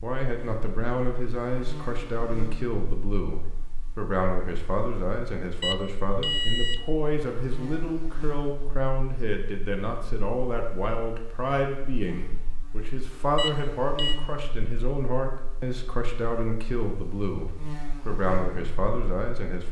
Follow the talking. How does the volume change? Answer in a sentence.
The volume of the talking stays about the same.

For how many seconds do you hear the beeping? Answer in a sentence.
The beeping can be heard for 2 seconds in total.